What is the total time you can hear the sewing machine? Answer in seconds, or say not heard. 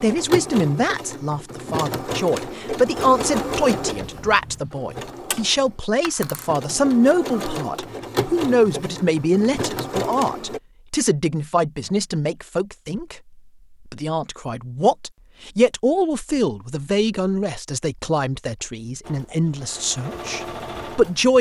13 s.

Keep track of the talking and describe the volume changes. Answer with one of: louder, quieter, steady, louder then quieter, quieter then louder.
steady.